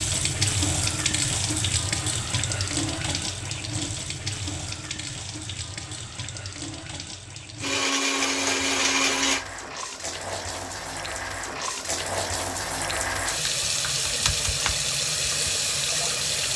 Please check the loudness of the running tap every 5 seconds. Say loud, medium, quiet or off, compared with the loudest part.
loud, medium, loud, loud.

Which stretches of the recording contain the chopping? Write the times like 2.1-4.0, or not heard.
not heard.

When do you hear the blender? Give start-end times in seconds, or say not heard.
7.6-9.4.